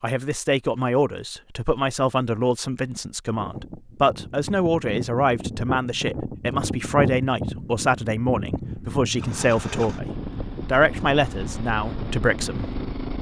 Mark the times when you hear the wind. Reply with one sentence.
The wind can be heard from 3.3 to 13.1 s.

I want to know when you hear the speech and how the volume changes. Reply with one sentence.
The speech can be heard from 0.0 to 12.7 s, at a steady volume.